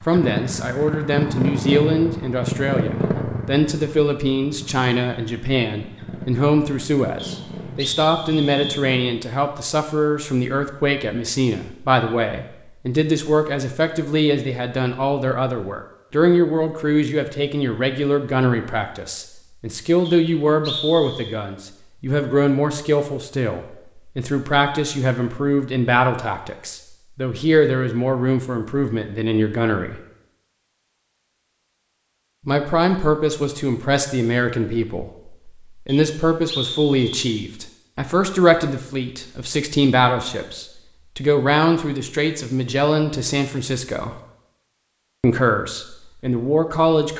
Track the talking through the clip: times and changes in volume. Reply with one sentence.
The talking can be heard from 0.1 to 30.0 s, at a steady volume; from 32.5 to 44.1 s, at a steady volume; and briefly from 45.2 to 47.1 s.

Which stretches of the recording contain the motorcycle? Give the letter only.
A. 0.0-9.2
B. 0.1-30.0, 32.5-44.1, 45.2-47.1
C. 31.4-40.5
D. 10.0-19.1
A.